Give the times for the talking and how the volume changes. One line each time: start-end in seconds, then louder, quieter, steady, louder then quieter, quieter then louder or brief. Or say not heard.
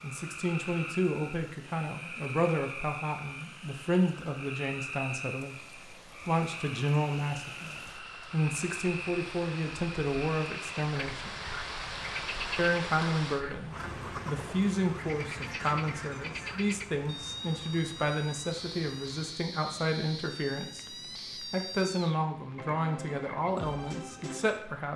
0.0-11.3 steady
12.6-24.9 steady.